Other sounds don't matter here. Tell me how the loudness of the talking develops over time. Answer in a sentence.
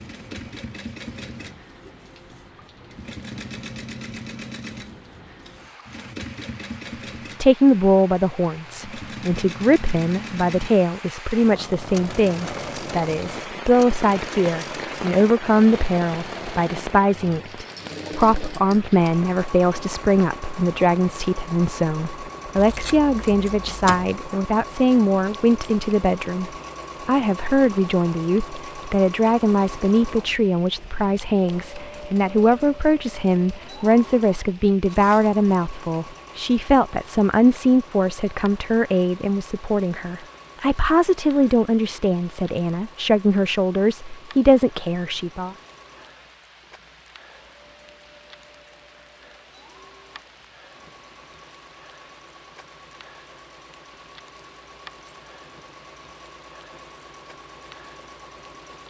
The volume of the talking stays about the same.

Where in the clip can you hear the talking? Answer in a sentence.
You can hear the talking from 7.4 to 45.5 s.